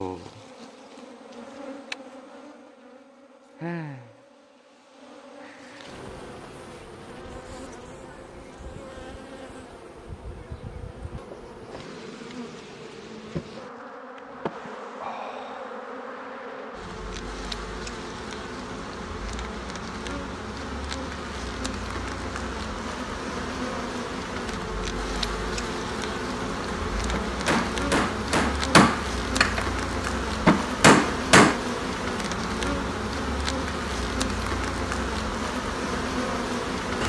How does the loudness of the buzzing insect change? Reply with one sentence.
The volume of the buzzing insect goes up.